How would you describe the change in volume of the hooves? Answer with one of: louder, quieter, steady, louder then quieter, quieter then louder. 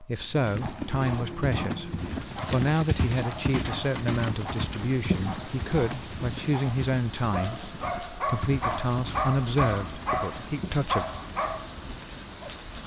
quieter.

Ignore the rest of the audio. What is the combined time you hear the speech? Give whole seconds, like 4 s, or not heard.
11 s.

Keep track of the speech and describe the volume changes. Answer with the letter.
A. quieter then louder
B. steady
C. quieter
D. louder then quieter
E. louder
B.